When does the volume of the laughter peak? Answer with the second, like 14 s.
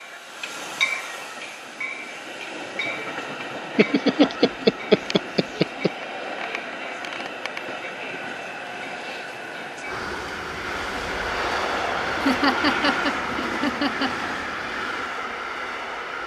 5 s.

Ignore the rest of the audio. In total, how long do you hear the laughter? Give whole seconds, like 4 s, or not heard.
4 s.